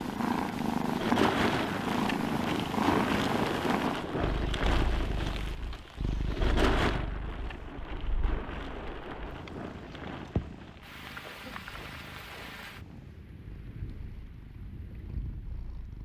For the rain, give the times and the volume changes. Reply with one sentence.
You can hear the rain from 0.0 to 15.9 s, getting quieter.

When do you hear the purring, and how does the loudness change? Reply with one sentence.
The purring can be heard from 0.0 to 15.9 s, getting quieter.